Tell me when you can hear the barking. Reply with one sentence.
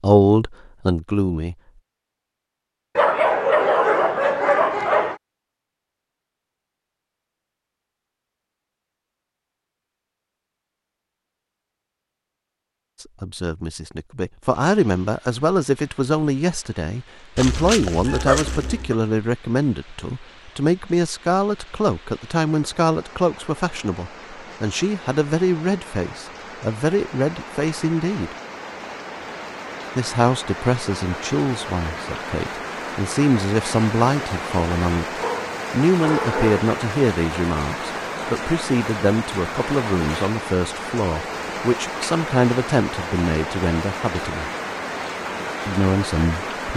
The barking can be heard from 3.0 to 5.2 s, from 17.4 to 18.9 s and from 35.2 to 36.6 s.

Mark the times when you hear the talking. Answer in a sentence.
The talking can be heard from 0.0 to 1.6 s, from 13.0 to 28.4 s, from 29.9 to 44.5 s and from 45.6 to 46.7 s.